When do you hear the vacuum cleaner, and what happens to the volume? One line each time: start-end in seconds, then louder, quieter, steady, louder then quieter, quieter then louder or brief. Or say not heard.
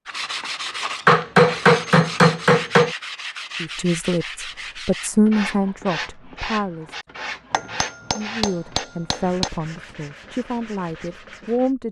not heard.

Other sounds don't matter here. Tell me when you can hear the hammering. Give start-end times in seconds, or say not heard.
1.1-3.0, 7.5-9.5.